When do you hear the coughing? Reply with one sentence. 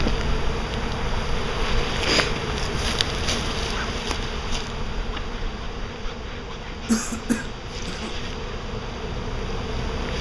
You can hear the coughing from 6.8 to 8.2 s.